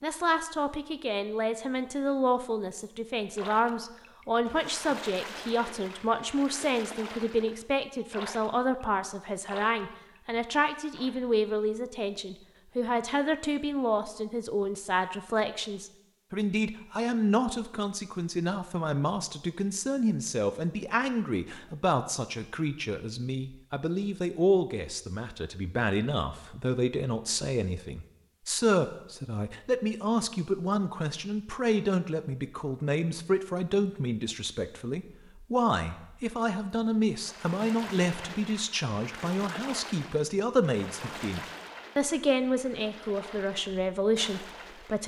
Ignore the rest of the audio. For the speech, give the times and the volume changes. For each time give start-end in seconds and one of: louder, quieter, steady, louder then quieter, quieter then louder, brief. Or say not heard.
0.0-45.0 steady.